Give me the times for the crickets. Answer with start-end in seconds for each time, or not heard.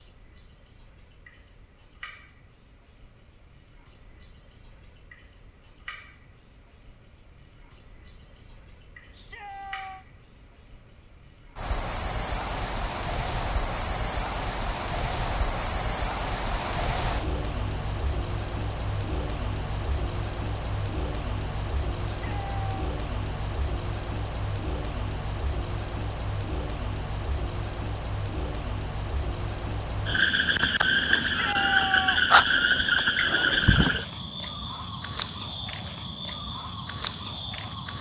0.0-37.9.